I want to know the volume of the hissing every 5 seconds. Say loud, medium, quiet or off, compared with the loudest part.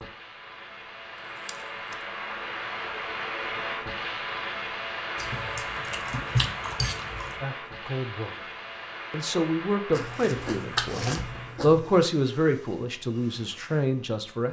loud, loud, medium.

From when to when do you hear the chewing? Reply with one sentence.
You can hear the chewing from 1.4 to 1.9 s, from 5.2 to 7.4 s and from 9.9 to 11.9 s.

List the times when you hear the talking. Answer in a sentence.
The talking can be heard from 7.4 to 8.5 s and from 9.1 to 14.4 s.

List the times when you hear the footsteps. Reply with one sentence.
The footsteps can't be heard in this clip.